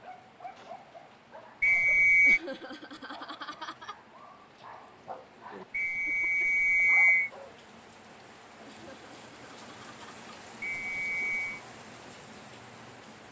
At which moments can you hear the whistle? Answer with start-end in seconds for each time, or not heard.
1.6-2.4, 5.7-7.3, 10.6-11.6.